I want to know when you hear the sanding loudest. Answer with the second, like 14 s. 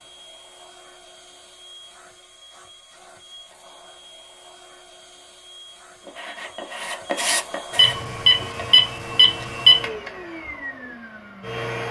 7 s.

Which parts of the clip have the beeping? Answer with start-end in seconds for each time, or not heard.
7.8-9.8.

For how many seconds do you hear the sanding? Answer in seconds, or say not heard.
3 s.